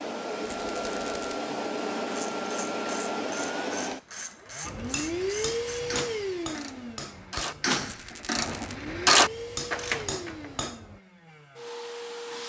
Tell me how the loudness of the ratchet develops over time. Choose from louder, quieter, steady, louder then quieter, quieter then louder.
louder.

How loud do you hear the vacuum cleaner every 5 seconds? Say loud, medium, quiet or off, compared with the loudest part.
loud, loud, medium.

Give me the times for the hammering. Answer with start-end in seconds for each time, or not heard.
4.6-11.0.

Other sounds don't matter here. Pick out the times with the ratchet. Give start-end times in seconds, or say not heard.
2.0-10.6.